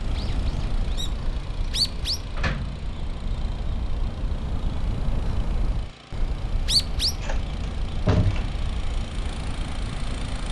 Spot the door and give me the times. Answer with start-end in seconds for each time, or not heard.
2.4-2.9, 7.2-8.6.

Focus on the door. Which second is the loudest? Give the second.
8 s.